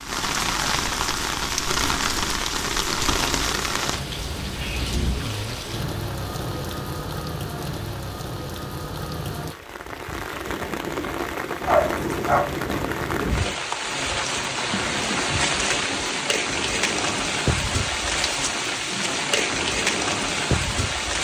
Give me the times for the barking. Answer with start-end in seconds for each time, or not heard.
11.6-12.6.